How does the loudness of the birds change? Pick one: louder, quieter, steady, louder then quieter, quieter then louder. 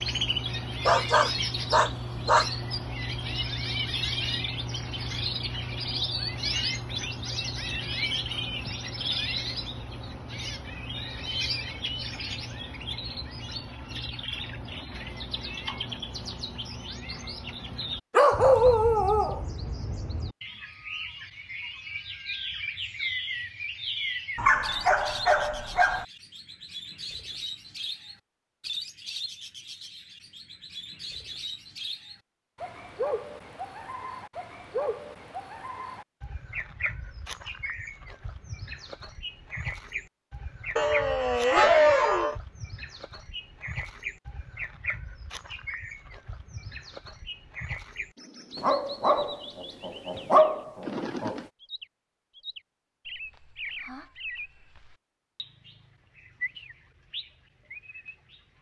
quieter.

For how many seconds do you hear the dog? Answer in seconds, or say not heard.
9 s.